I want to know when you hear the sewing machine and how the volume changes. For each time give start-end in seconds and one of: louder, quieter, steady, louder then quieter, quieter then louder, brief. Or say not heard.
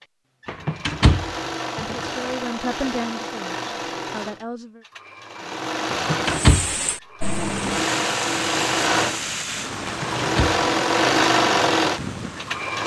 0.0-12.8 louder.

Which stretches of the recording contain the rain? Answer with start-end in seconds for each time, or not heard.
6.2-12.8.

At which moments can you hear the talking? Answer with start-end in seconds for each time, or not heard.
1.8-4.8.